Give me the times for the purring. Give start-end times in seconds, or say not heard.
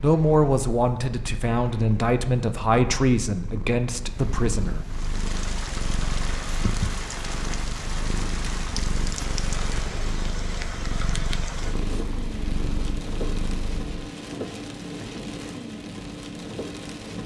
0.0-13.9.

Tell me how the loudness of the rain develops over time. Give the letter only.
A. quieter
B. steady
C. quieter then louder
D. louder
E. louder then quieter
B.